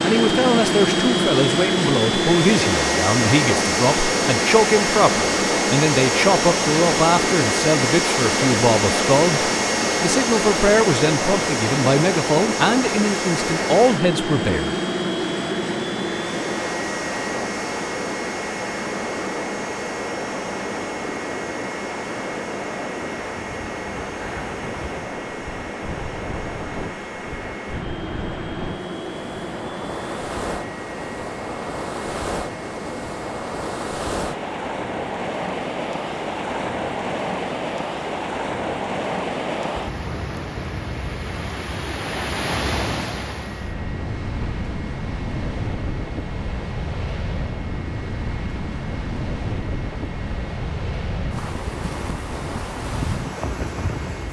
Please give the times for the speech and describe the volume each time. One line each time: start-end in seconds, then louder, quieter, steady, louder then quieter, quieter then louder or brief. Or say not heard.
0.0-14.8 steady.